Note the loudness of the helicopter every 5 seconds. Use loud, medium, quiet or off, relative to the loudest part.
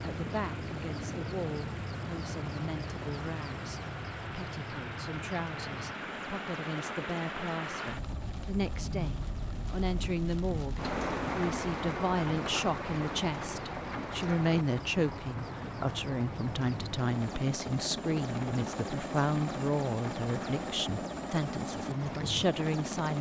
loud, medium, medium, loud, loud.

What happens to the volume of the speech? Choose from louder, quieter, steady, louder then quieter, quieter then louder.
louder.